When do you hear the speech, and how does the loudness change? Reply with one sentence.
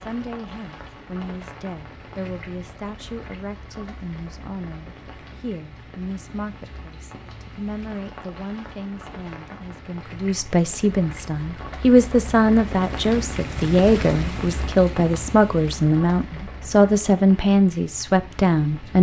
The speech can be heard from 0.0 to 18.9 s, getting louder.